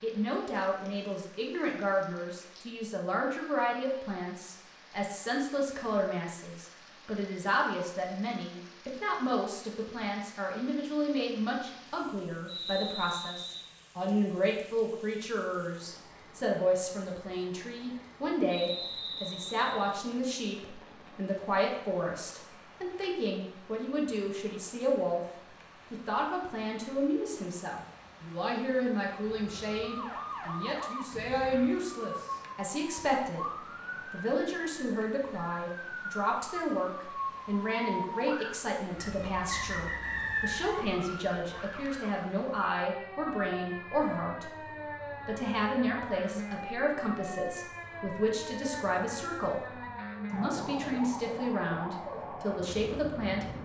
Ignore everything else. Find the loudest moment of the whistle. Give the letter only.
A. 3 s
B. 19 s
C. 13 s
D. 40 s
D.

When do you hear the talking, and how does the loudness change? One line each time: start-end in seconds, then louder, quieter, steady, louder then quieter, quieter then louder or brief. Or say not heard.
0.0-44.6 steady
45.2-53.5 steady.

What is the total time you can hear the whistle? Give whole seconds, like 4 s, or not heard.
4 s.